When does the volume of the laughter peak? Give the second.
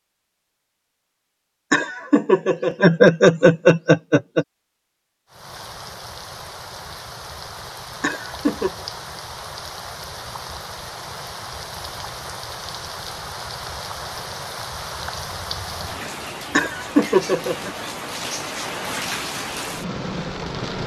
3 s.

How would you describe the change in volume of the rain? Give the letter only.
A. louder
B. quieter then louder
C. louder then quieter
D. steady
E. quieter
A.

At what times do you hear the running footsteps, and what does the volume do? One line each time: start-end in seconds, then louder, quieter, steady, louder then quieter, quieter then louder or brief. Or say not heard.
not heard.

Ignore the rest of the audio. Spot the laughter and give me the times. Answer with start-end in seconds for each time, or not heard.
1.7-4.5, 8.0-8.7, 16.6-17.7.